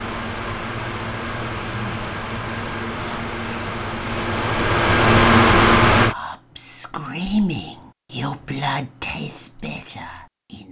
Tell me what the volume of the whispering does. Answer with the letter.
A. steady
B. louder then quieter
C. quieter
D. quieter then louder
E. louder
B.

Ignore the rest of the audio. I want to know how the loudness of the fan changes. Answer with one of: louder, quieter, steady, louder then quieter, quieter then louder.
louder.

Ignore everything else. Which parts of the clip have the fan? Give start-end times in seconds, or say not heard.
0.0-6.2.